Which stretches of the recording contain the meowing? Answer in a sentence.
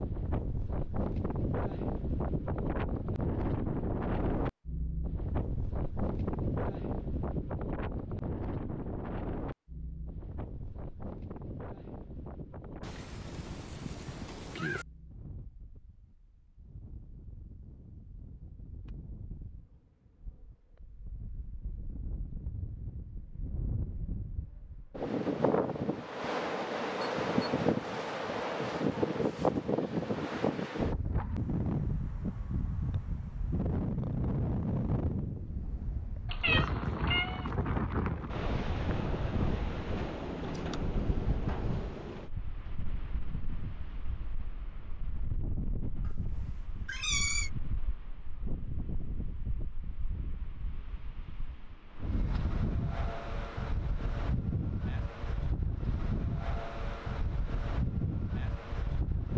The meowing can be heard from 12.8 to 14.8 s, from 36.2 to 37.5 s and from 46.0 to 47.5 s.